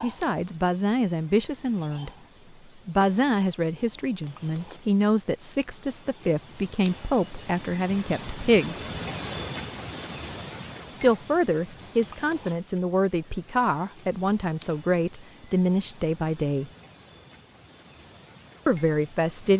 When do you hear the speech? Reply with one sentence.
The speech can be heard from 0.0 to 2.1 s, from 2.9 to 8.9 s, from 10.9 to 16.7 s and from 18.6 to 19.5 s.